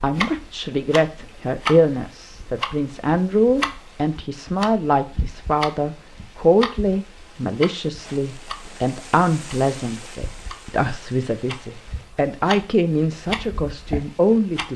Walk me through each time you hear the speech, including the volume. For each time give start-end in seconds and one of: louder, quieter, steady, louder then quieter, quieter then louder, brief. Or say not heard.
0.0-14.7 steady.